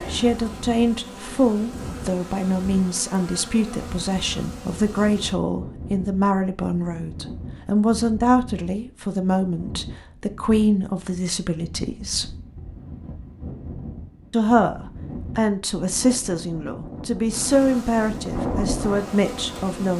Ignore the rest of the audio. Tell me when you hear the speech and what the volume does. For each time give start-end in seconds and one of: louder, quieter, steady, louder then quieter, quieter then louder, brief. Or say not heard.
0.1-12.3 steady
14.3-19.9 steady.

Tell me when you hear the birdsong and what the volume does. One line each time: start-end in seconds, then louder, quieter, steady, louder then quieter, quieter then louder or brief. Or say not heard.
not heard.